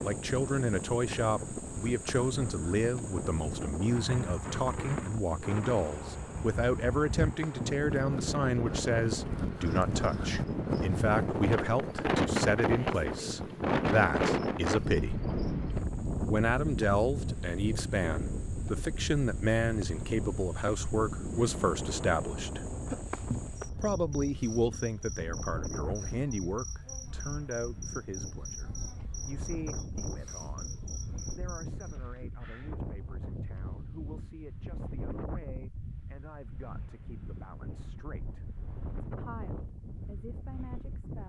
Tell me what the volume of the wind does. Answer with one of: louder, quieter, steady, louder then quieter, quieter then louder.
louder then quieter.